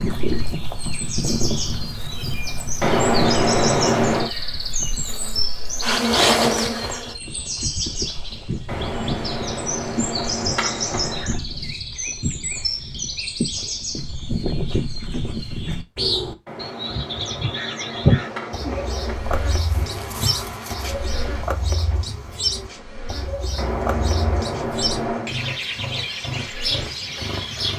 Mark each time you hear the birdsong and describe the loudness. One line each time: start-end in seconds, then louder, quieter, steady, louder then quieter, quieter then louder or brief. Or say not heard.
0.0-27.7 steady.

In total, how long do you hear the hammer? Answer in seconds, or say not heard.
9 s.